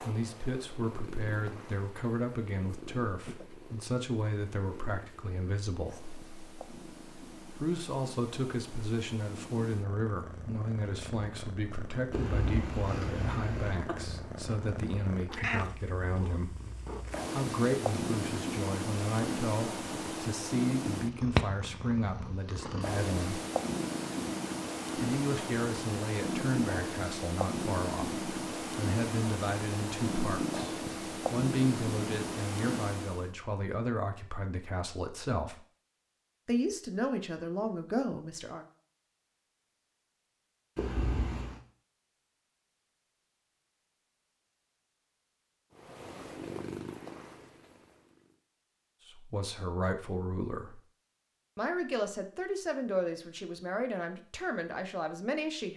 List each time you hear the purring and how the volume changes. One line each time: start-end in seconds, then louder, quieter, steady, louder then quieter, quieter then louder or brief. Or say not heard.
0.0-33.3 louder
45.8-48.4 brief.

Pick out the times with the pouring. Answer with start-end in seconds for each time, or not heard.
not heard.